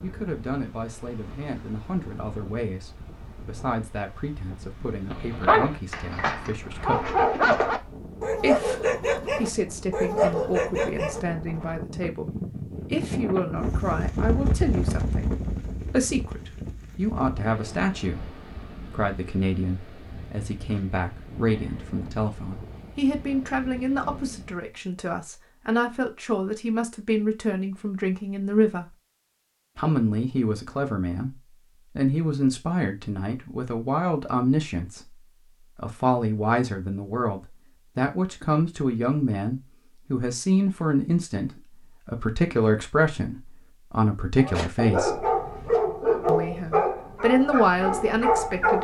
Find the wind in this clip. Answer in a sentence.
The wind can be heard from 0.0 to 24.8 s.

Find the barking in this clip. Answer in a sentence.
You can hear the barking from 5.1 to 11.2 s and from 44.4 to 48.8 s.